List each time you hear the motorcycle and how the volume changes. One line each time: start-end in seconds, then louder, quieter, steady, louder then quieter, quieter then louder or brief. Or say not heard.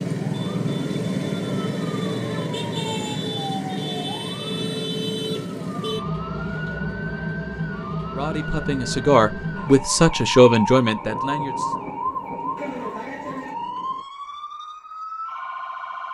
not heard.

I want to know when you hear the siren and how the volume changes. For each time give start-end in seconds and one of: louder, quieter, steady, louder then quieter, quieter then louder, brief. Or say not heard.
0.0-16.0 quieter.